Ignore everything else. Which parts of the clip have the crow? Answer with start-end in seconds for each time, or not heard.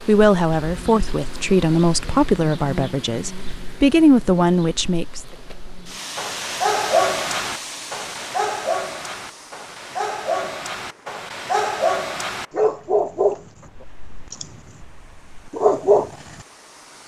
not heard.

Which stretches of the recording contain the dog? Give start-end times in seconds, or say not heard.
6.2-16.4.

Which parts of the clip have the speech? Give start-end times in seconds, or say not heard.
0.1-5.2.